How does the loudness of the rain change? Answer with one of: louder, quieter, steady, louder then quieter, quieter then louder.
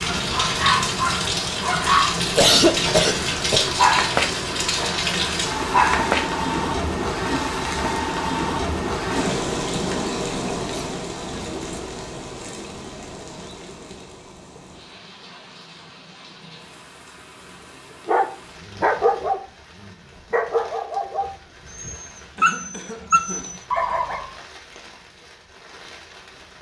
quieter.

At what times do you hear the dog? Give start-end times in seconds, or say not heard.
0.0-6.3, 18.1-24.3.